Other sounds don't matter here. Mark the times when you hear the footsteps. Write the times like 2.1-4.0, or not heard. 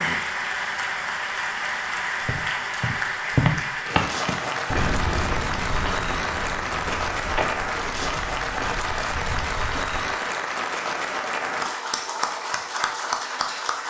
2.2-10.1.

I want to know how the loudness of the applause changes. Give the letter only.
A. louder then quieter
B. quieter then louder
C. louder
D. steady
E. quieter
D.